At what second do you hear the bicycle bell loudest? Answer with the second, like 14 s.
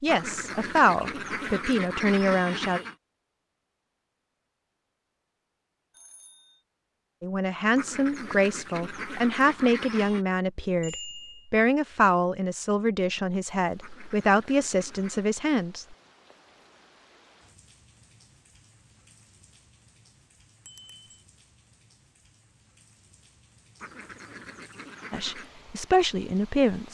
11 s.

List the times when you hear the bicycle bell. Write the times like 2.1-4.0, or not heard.
5.9-6.6, 10.8-11.5, 20.6-21.2.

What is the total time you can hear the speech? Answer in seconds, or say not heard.
13 s.